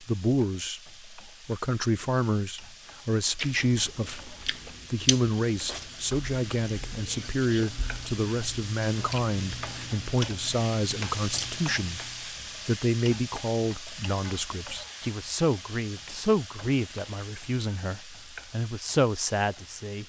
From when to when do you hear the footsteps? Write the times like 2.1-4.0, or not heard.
not heard.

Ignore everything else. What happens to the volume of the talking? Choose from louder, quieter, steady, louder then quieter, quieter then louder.
steady.